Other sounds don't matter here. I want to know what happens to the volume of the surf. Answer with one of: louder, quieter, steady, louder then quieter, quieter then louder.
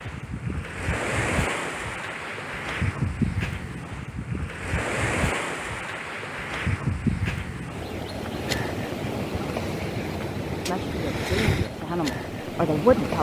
steady.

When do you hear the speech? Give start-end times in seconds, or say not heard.
10.7-13.1.